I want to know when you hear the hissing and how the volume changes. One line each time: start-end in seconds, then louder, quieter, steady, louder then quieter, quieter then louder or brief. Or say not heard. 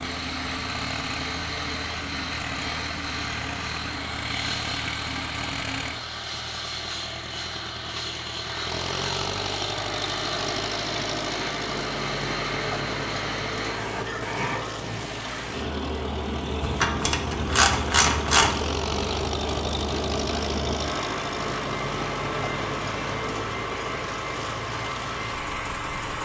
0.0-26.1 steady.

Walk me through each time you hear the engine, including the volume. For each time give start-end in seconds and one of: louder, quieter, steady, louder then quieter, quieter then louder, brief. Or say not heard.
0.0-26.1 steady.